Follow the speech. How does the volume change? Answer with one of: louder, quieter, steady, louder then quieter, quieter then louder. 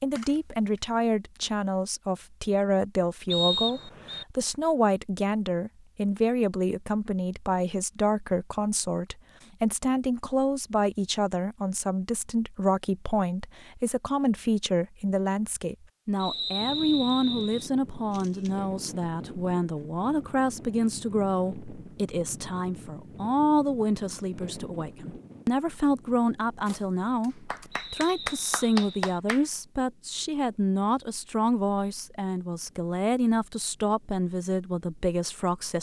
steady.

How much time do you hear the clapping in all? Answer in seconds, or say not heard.
2 s.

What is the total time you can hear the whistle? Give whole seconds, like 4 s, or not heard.
4 s.